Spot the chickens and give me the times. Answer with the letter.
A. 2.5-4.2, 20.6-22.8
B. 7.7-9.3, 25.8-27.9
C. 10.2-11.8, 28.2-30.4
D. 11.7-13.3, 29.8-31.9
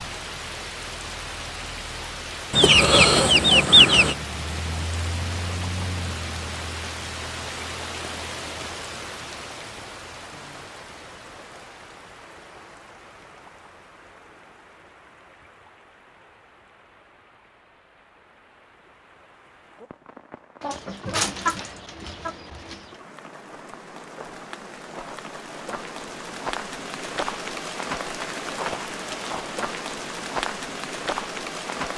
A.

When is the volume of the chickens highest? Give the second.
4 s.